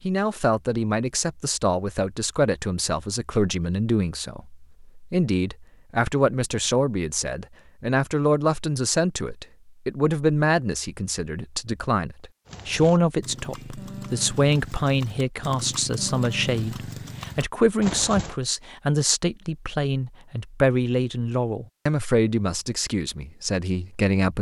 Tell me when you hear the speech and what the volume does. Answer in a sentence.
The speech can be heard from 0.1 to 24.3 s, at a steady volume.